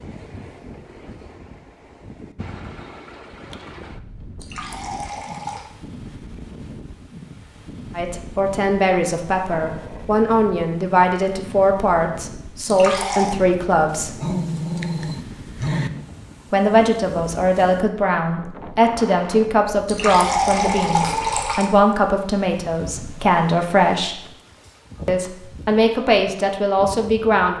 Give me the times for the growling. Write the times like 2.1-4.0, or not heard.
9.5-10.1, 13.8-15.9.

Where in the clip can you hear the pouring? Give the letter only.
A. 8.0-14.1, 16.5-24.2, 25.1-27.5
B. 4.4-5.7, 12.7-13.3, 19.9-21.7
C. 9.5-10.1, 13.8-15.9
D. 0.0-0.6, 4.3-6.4
B.